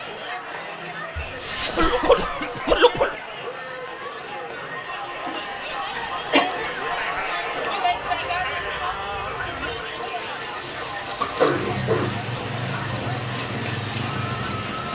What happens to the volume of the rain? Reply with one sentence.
The loudness of the rain goes up.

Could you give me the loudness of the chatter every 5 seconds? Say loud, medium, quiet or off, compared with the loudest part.
medium, loud, medium.